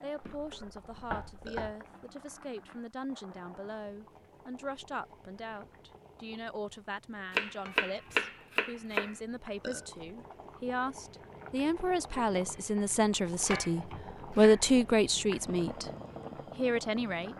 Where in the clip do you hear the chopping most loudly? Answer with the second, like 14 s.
8 s.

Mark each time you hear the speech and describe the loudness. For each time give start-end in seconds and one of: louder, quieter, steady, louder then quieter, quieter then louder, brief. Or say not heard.
0.0-15.9 louder
16.6-17.3 brief.